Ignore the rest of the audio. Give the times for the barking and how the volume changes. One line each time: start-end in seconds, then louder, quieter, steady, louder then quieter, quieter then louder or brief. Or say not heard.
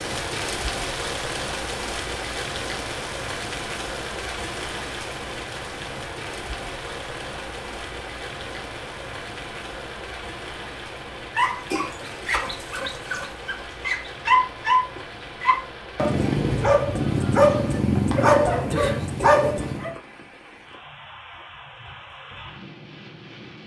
11.3-19.9 louder.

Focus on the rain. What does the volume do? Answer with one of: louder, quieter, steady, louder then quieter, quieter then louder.
quieter.